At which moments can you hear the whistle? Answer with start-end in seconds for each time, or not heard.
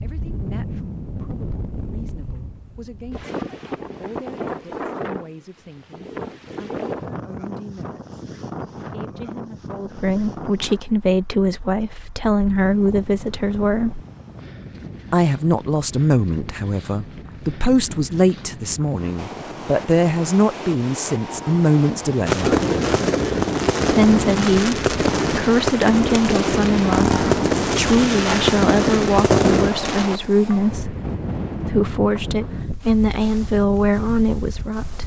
not heard.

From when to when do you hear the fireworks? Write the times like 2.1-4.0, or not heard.
22.2-30.1.